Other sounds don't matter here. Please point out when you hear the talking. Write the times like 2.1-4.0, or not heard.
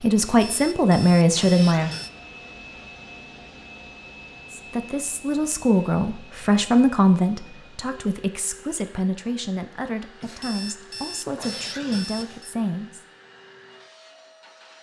0.0-1.9, 4.5-13.0.